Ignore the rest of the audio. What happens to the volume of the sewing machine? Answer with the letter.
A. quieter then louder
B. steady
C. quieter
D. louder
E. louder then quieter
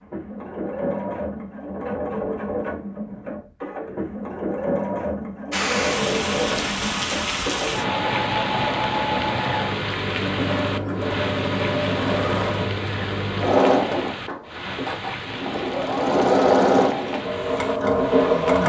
D.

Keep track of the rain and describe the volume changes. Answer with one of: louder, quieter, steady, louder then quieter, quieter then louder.
quieter.